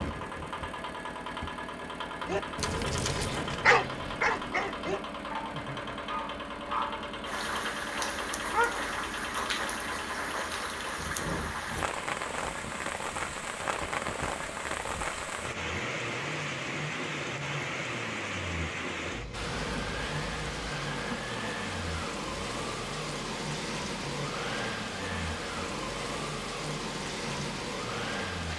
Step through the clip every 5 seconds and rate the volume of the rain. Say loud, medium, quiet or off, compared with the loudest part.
off, loud, loud, loud, loud, loud.